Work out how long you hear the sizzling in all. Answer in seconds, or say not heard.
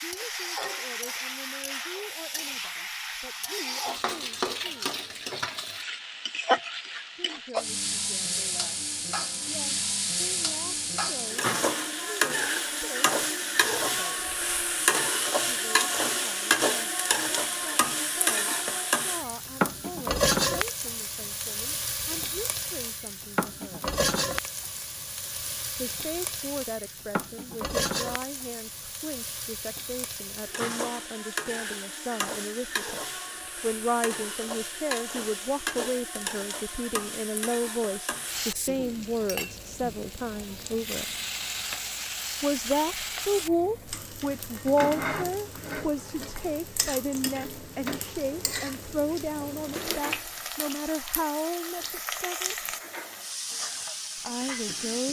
55 s.